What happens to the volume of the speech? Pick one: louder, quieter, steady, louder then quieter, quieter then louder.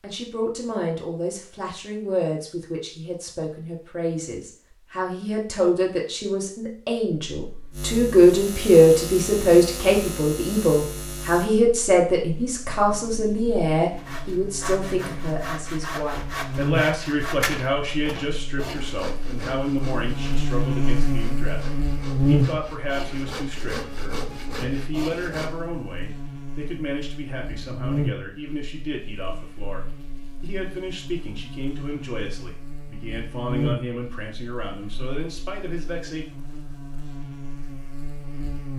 louder then quieter.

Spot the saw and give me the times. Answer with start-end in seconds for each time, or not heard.
13.9-25.5.